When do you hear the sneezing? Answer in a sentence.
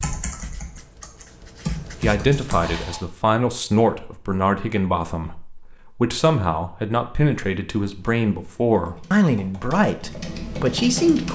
You can hear the sneezing from 2.6 to 3.1 s.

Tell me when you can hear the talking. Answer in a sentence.
The talking can be heard from 2.0 to 11.3 s.